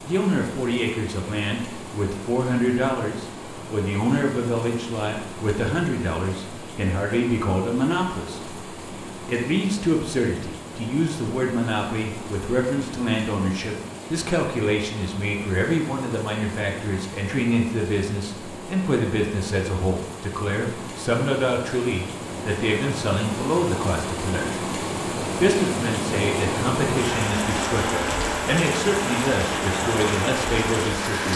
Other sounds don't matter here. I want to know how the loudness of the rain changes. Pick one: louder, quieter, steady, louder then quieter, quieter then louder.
louder.